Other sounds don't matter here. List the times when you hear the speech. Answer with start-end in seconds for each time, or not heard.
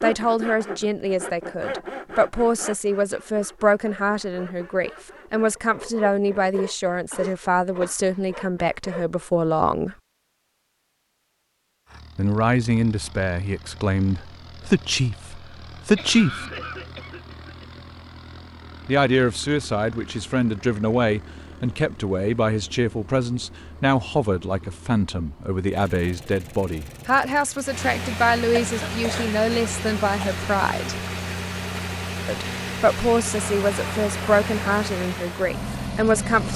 0.0-9.9, 12.2-16.4, 18.9-30.9, 32.2-36.5.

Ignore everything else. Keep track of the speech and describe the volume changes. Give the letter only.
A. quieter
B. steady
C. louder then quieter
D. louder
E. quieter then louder
B.